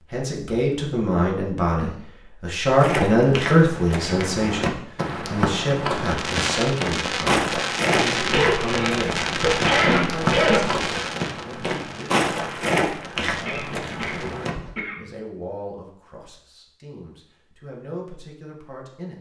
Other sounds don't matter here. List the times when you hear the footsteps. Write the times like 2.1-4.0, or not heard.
2.8-14.8.